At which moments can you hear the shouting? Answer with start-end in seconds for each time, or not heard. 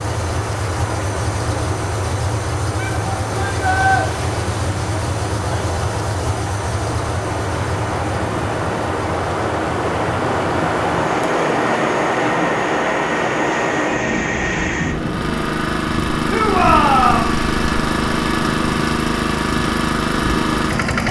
2.8-4.0, 16.2-17.4.